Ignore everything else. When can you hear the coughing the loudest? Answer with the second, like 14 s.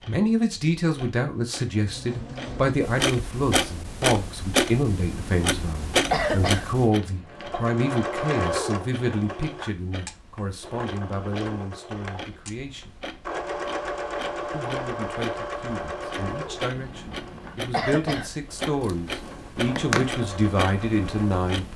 6 s.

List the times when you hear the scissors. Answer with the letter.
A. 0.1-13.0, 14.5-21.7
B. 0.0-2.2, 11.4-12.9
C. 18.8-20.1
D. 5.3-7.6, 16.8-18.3
C.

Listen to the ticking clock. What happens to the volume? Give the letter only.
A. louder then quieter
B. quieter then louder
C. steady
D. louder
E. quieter
B.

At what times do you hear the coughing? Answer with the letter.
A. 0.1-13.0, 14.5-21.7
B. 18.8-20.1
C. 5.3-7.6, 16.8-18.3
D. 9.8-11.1
C.